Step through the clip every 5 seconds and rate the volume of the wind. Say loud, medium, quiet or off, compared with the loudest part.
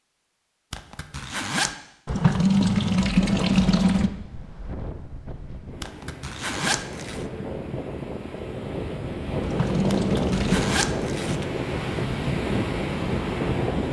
medium, medium, loud.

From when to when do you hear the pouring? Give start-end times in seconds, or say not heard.
2.0-4.1, 9.4-10.7.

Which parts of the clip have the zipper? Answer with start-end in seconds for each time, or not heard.
0.7-1.8, 5.8-7.2, 9.9-11.4.